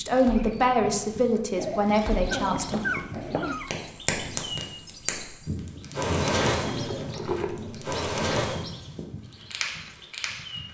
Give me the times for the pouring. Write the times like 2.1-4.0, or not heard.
6.7-7.5.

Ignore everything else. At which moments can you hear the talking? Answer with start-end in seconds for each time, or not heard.
0.0-2.8.